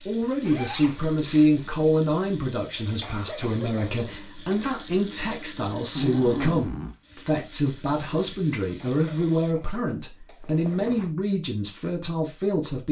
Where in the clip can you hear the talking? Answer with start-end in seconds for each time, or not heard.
0.1-12.8.